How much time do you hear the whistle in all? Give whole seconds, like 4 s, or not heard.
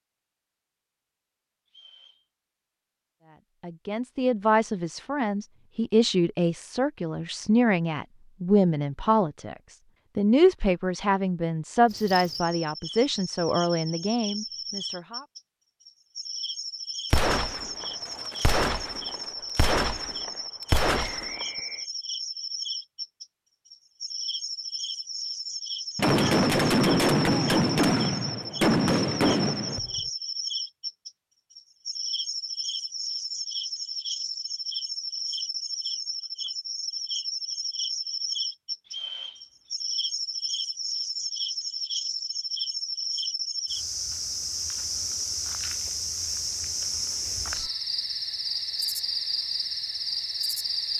2 s.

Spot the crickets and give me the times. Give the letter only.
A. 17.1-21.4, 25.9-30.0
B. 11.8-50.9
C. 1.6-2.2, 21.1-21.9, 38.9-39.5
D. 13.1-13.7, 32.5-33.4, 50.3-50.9
B.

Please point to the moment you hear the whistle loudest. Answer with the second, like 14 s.
39 s.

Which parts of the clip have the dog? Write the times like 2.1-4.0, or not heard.
not heard.